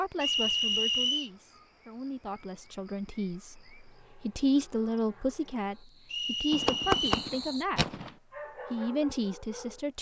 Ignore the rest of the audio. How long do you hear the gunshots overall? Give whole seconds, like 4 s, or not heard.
2 s.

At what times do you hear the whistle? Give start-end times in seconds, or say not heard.
0.2-1.3, 6.1-7.3.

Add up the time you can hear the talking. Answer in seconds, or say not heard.
9 s.